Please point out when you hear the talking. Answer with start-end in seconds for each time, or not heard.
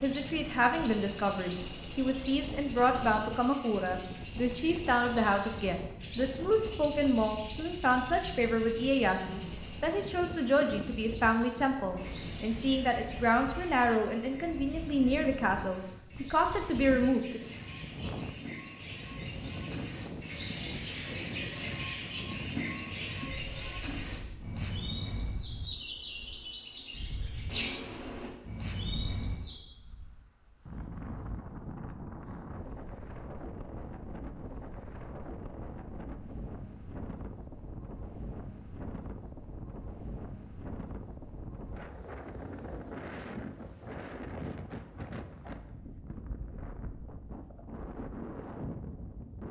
0.0-17.4.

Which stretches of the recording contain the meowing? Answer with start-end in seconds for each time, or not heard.
not heard.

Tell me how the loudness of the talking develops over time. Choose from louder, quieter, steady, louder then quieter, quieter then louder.
steady.